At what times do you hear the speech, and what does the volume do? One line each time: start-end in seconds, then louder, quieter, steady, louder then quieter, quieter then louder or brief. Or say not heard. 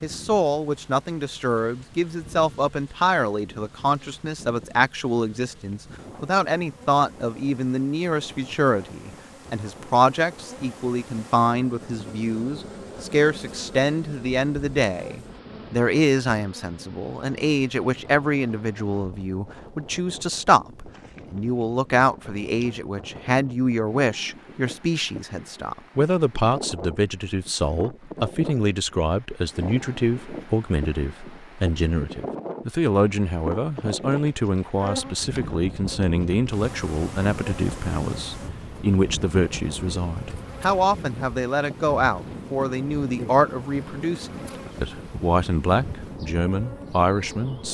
0.0-47.6 steady.